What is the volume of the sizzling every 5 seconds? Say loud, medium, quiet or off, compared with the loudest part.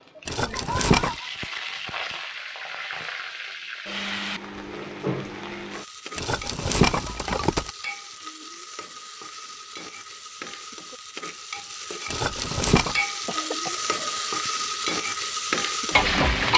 medium, quiet, medium, loud.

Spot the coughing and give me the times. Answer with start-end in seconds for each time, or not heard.
0.3-1.3, 13.2-14.5.